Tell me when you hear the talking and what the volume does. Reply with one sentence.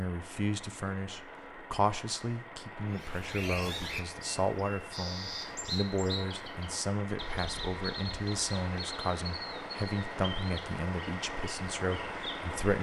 The talking can be heard from 0.0 to 12.7 s, at a steady volume.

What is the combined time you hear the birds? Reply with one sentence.
You can hear the birds for 10 seconds altogether.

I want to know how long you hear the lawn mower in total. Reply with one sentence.
The lawn mower can be heard for 13 seconds in total.